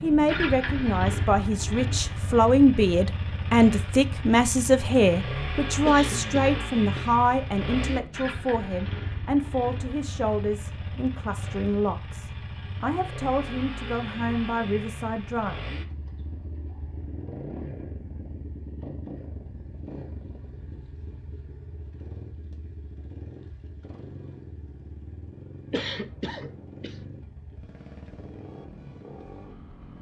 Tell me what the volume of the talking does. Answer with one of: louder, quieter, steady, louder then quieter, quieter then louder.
quieter.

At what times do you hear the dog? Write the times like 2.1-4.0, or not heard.
not heard.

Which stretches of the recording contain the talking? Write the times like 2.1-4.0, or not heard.
0.0-15.6.